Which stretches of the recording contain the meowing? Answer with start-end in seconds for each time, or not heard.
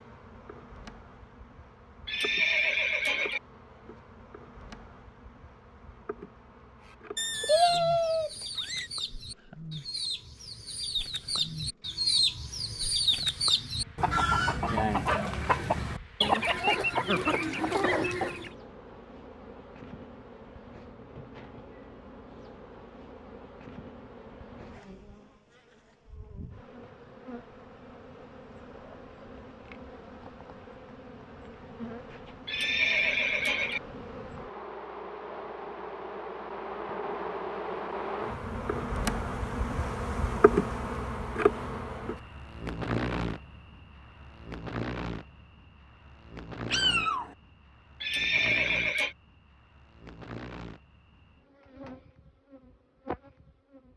7.2-8.9, 46.7-47.4.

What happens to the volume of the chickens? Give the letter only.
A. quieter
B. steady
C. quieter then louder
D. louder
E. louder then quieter
D.